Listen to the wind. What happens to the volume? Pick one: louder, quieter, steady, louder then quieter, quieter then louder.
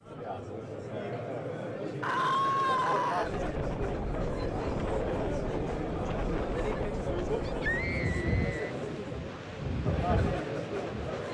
steady.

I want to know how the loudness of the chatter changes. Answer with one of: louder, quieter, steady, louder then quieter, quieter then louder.
steady.